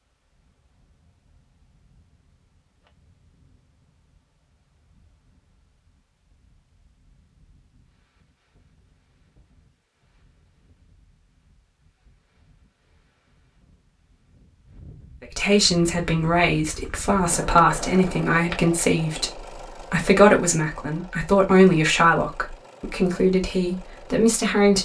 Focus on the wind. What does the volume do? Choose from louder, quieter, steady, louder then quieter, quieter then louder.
louder.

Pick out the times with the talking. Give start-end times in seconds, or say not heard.
15.2-24.8.